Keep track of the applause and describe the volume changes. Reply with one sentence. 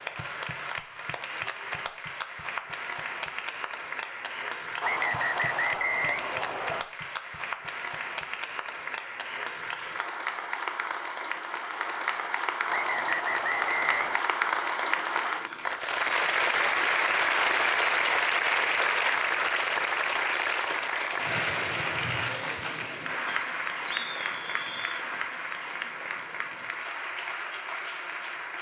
The volume of the applause goes up, then down.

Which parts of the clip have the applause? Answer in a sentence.
The applause can be heard from 0.0 to 28.5 s.